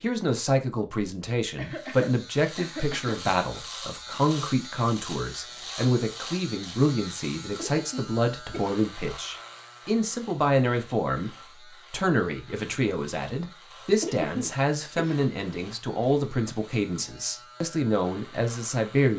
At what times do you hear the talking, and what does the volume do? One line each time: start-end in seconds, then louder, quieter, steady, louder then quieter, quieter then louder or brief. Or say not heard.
0.0-19.1 steady.